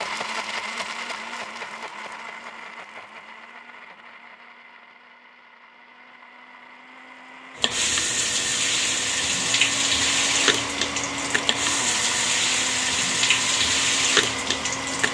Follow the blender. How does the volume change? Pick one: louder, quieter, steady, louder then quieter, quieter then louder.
quieter then louder.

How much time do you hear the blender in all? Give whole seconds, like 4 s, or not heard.
15 s.